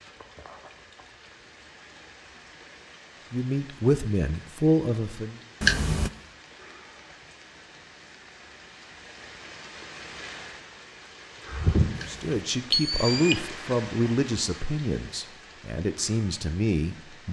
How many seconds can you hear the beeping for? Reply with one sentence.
You can hear the beeping for 2 seconds altogether.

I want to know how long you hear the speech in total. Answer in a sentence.
The speech can be heard for 7 seconds in total.